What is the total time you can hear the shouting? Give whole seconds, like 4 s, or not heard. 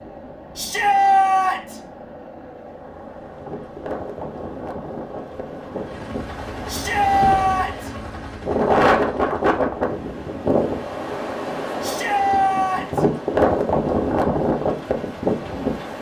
4 s.